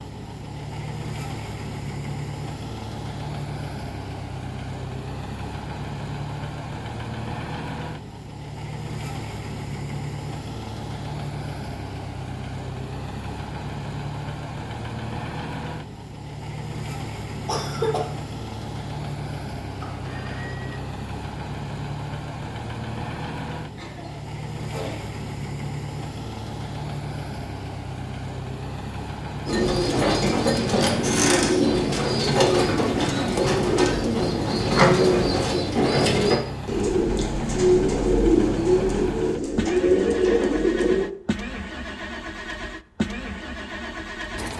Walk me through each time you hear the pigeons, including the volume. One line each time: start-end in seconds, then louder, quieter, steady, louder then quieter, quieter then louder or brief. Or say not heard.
29.4-41.1 steady.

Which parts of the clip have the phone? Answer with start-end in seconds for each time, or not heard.
19.8-20.8.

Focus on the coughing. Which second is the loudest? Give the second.
18 s.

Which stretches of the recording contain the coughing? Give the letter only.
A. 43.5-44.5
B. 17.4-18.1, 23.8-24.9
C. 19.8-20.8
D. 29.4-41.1
B.